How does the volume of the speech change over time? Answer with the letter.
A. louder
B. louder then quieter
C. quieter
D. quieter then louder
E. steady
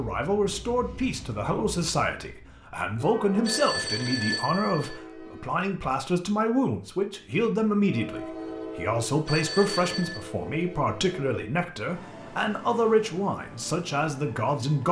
E.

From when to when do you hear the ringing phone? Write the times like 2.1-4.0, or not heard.
3.5-5.0, 9.2-10.2.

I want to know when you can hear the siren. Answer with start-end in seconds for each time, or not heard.
not heard.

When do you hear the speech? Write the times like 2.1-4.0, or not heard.
0.0-14.8.